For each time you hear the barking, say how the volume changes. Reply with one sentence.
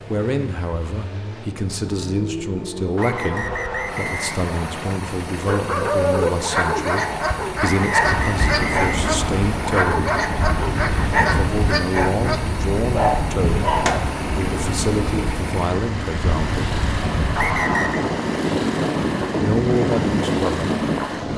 You can hear the barking from 5.3 to 14.0 s, at a steady volume.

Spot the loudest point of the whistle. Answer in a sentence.
The volume of the whistle peaks at 18 seconds.